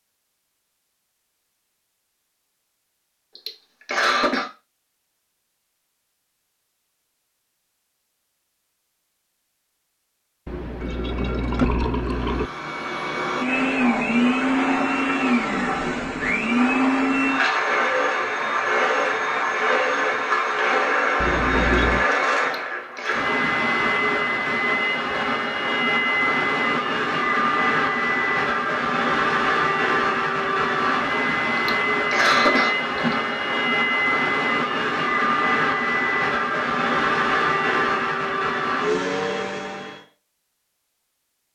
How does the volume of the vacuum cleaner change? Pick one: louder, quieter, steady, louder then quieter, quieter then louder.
steady.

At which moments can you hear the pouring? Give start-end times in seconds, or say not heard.
10.4-12.5, 21.2-22.1.